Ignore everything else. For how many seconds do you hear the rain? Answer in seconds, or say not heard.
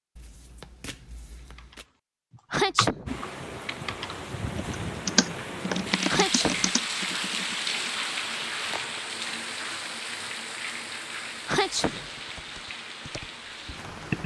11 s.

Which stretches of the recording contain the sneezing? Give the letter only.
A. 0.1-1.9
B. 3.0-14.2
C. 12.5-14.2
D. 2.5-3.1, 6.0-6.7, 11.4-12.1
D.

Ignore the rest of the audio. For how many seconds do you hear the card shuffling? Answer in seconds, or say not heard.
2 s.